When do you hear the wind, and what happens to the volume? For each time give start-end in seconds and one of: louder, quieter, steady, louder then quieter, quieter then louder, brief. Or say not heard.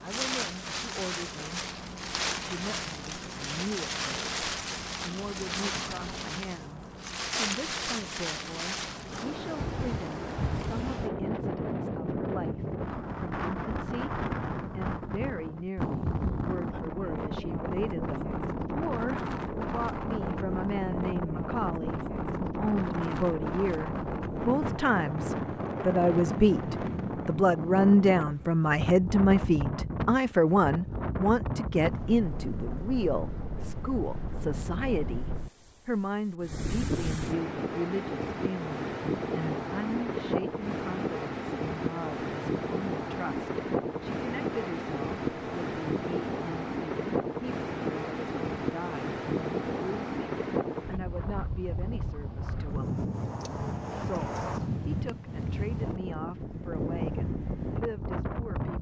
0.0-58.7 steady.